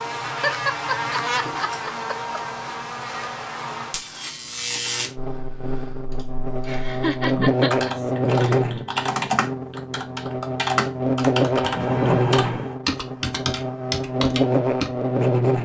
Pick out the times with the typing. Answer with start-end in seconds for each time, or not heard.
5.2-14.9.